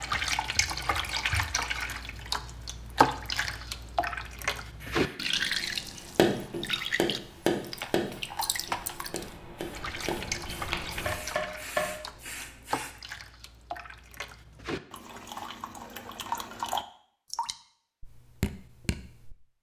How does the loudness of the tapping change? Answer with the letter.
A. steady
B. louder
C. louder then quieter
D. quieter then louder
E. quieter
D.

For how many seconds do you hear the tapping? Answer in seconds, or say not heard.
6 s.